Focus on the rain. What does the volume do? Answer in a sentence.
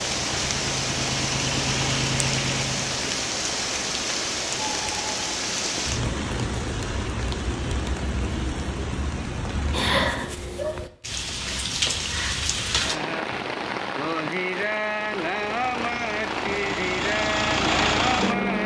The loudness of the rain stays about the same.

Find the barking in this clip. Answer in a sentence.
You can hear the barking from 9.9 to 10.8 s.